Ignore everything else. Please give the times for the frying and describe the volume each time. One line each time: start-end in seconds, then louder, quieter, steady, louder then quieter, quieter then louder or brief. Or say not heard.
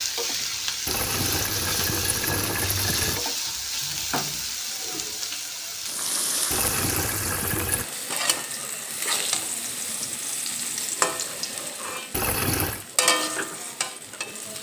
0.0-14.5 steady.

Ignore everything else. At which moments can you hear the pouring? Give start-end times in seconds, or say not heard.
0.8-3.2, 6.5-7.8, 12.1-12.8.